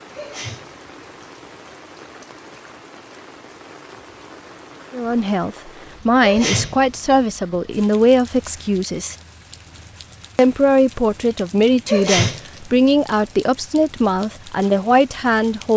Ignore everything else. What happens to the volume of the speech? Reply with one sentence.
The volume of the speech stays about the same.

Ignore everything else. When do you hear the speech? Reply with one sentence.
You can hear the speech from 4.9 to 9.2 s and from 10.3 to 15.7 s.